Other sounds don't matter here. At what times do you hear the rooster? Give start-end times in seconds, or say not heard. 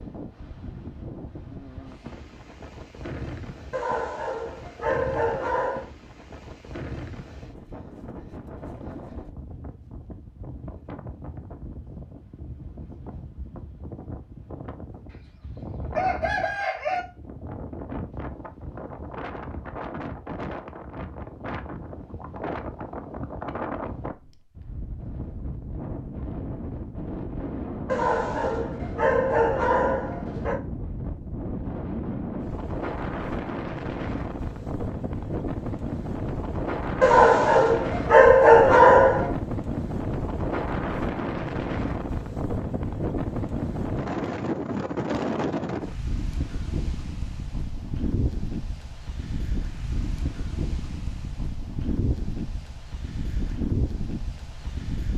15.1-17.0.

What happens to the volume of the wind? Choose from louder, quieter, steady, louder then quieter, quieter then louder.
louder.